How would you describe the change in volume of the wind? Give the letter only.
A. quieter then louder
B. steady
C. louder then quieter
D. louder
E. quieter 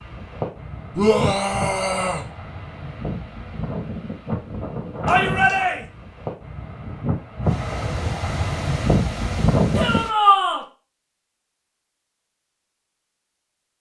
D.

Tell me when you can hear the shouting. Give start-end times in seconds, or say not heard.
0.9-2.2, 5.0-5.8, 9.8-10.7.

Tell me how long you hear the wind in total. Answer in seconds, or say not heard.
10 s.